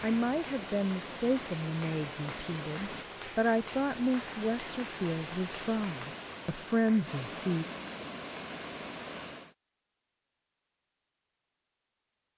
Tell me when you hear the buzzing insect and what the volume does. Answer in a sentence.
You can't hear the buzzing insect here.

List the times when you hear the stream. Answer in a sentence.
You can hear the stream from 0.0 to 9.6 s.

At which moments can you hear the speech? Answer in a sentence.
You can hear the speech from 0.0 to 7.7 s.